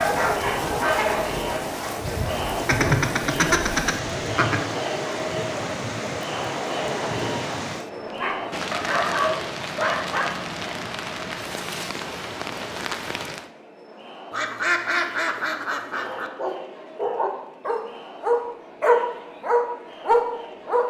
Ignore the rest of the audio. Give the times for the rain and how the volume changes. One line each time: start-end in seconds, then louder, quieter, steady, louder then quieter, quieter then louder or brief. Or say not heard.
0.0-13.5 steady.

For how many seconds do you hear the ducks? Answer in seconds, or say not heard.
4 s.